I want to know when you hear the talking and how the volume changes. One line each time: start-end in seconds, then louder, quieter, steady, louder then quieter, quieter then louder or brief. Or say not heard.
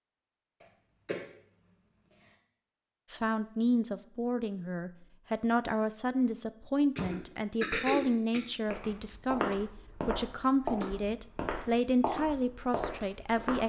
3.1-13.6 steady.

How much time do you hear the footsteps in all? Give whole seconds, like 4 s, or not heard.
5 s.